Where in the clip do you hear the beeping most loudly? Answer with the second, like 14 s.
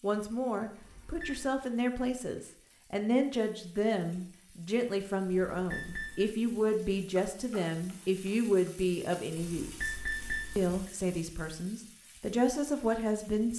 10 s.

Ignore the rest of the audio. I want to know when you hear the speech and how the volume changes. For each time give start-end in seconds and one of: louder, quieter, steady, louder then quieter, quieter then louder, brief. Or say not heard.
0.0-9.9 steady
10.6-13.5 brief.